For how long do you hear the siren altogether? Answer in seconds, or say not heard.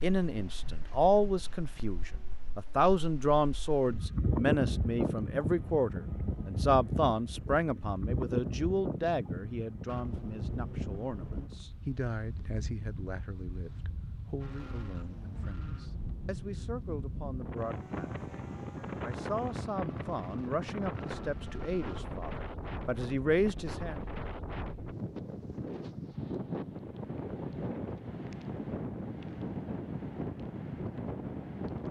not heard.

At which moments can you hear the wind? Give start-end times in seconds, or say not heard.
0.0-31.8.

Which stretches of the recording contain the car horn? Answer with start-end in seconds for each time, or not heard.
not heard.